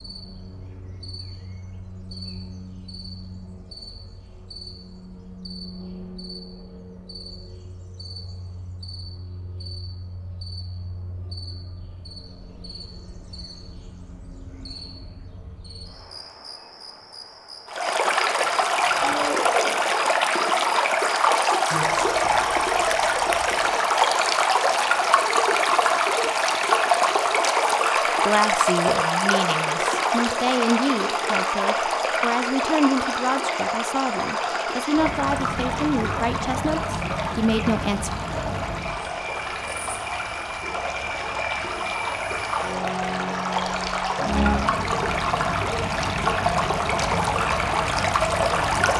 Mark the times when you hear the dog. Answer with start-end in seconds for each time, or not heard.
18.9-19.8.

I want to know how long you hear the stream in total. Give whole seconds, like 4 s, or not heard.
31 s.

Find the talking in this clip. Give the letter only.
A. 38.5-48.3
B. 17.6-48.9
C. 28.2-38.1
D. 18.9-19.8
C.